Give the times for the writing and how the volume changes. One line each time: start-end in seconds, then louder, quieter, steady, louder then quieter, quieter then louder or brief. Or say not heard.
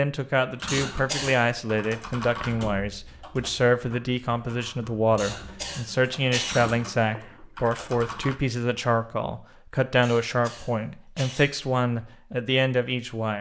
not heard.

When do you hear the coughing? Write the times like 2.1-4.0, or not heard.
0.7-1.4, 5.2-6.7, 10.0-11.5.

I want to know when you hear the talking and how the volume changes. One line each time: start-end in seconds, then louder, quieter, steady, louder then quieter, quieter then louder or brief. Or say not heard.
0.0-13.3 steady.